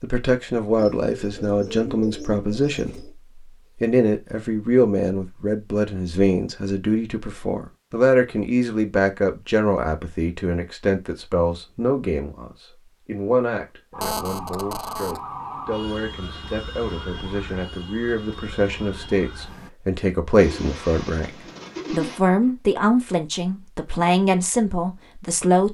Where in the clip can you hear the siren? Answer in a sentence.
You can hear the siren from 13.9 to 19.7 s.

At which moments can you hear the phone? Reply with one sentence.
The phone can be heard from 14.0 to 15.2 s.